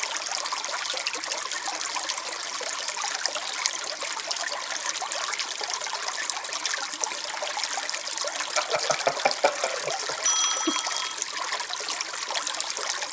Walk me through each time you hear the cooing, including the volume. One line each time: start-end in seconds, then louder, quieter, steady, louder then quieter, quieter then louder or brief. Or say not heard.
not heard.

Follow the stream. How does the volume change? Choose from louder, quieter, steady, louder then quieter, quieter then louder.
steady.